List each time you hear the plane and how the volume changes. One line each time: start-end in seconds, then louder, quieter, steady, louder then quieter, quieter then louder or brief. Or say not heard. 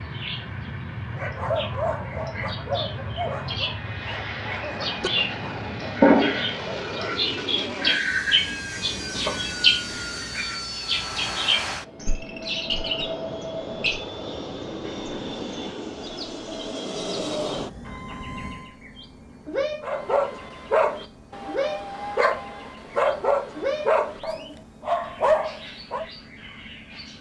0.0-27.1 quieter.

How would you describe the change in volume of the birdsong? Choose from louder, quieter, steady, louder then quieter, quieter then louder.
louder then quieter.